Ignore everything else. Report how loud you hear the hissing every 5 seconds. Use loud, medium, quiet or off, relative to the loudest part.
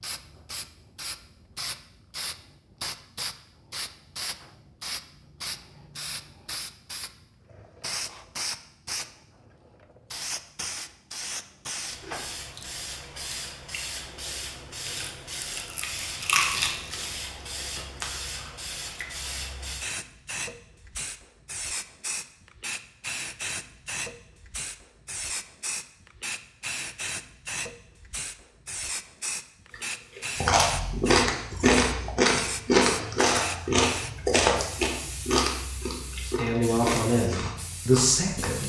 loud, loud, loud, loud, loud, loud, loud, medium.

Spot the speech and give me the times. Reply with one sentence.
You can hear the speech from 36.2 to 38.6 s.